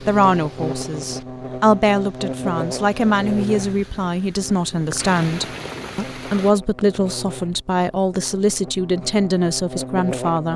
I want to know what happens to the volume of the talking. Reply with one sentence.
The loudness of the talking stays about the same.